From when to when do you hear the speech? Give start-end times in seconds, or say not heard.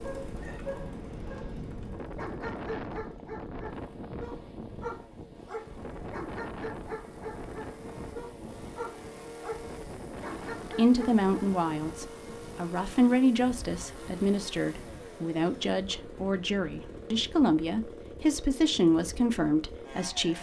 10.7-20.3.